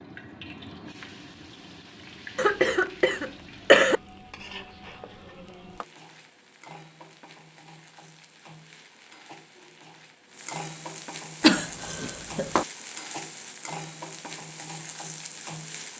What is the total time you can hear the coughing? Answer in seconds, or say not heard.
3 s.